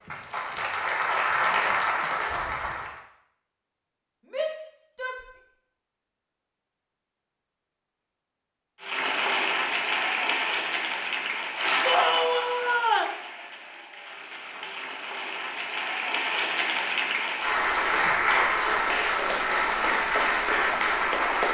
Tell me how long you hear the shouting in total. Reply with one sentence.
The shouting can be heard for 2 seconds in total.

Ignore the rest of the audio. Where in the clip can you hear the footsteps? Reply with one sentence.
The footsteps can't be heard in this clip.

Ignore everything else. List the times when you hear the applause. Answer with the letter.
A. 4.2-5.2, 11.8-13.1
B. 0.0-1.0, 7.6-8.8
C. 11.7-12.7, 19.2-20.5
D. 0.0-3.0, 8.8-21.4
D.